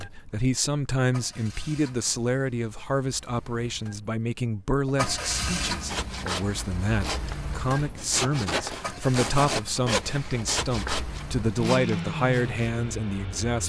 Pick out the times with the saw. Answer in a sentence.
You can hear the saw from 5.8 to 12.7 s.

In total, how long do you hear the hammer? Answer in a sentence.
The hammer can't be heard in this clip.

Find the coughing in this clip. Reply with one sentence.
You can't hear the coughing here.